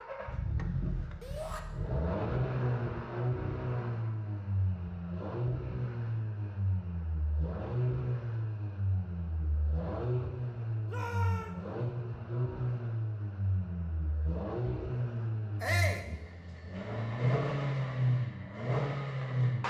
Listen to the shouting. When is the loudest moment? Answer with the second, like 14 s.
16 s.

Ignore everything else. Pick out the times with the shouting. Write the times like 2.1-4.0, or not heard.
1.2-1.6, 10.8-11.6, 15.6-16.1.